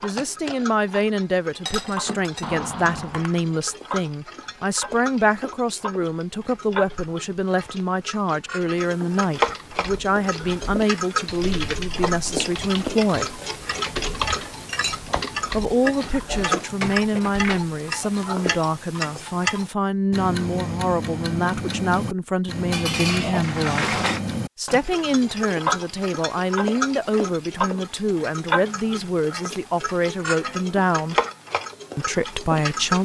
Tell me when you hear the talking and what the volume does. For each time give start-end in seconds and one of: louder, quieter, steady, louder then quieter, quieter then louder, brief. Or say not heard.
0.0-13.4 steady
15.5-31.1 steady
31.9-33.0 brief.